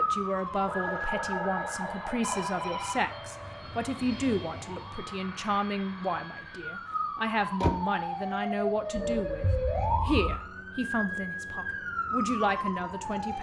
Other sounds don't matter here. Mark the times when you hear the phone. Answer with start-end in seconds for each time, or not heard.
2.2-3.1, 8.9-10.3.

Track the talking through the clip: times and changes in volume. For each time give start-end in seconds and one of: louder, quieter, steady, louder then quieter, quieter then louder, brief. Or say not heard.
0.0-13.3 steady.